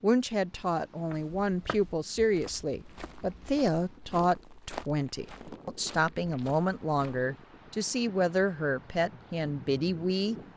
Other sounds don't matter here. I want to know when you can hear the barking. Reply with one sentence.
The barking can't be heard in this clip.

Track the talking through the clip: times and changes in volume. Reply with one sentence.
The talking can be heard from 0.0 to 10.3 s, at a steady volume.